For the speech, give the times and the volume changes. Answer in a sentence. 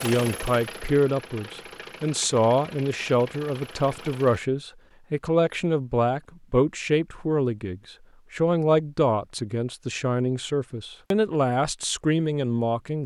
You can hear the speech from 0.0 to 13.0 s, at a steady volume.